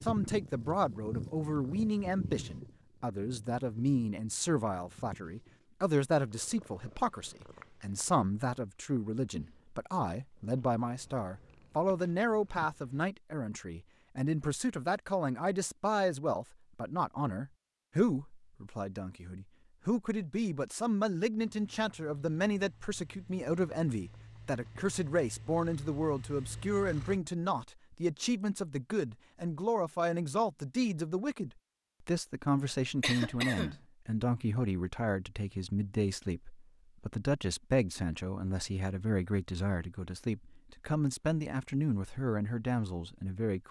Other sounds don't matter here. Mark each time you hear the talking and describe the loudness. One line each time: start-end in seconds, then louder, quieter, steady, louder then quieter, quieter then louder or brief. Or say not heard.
0.0-43.6 steady.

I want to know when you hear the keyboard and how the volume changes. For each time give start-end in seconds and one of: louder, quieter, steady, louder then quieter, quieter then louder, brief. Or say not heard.
not heard.